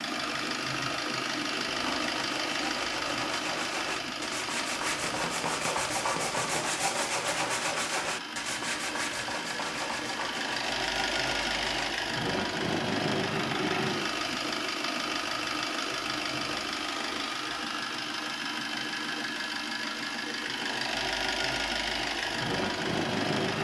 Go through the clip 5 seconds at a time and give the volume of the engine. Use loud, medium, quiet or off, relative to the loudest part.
loud, medium, loud, loud, loud.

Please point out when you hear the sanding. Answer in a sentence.
The sanding can be heard from 1.8 to 11.9 s.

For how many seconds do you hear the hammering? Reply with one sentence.
The hammering can be heard for 2 seconds in total.